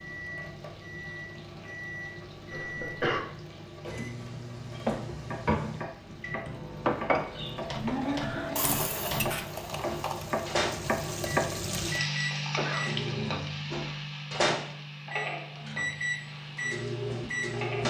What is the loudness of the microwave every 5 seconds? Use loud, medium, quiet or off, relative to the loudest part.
medium, medium, loud, loud.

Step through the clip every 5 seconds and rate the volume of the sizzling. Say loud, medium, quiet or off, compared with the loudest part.
quiet, medium, loud, medium.